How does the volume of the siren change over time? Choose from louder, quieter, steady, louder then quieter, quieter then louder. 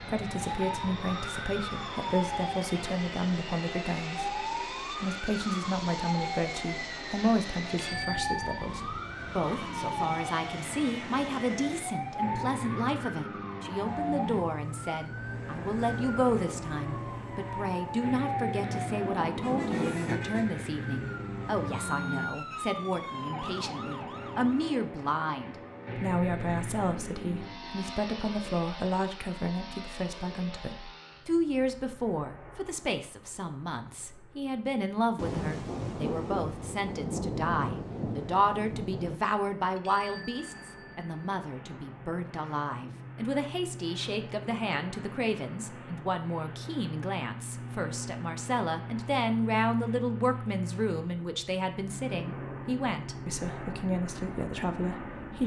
steady.